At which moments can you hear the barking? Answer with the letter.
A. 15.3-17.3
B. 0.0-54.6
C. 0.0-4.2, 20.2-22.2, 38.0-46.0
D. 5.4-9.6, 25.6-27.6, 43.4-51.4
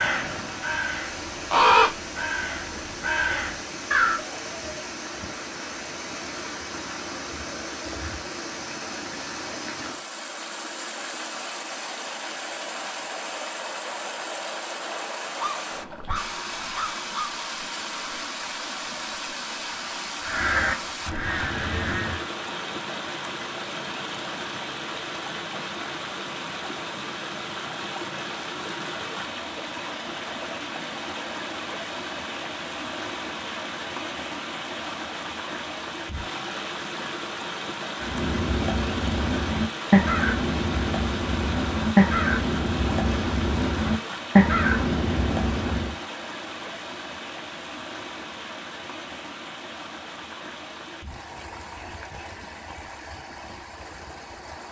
A.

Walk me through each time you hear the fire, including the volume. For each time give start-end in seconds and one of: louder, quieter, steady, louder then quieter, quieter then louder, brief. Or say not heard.
not heard.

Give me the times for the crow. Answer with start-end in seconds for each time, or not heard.
0.0-4.2, 20.2-22.2, 38.0-46.0.